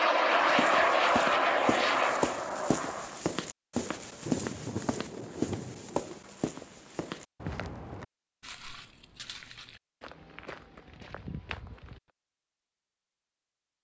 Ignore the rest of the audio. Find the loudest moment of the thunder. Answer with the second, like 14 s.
5 s.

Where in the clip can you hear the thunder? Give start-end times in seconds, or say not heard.
4.2-6.2.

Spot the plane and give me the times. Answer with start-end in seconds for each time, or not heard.
0.0-3.2.